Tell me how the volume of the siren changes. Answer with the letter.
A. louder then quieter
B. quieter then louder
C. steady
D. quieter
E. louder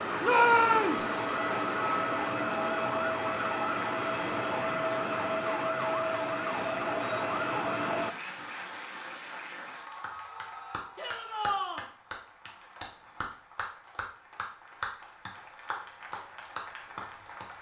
C.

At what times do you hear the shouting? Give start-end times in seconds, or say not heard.
0.2-1.0, 10.9-11.8.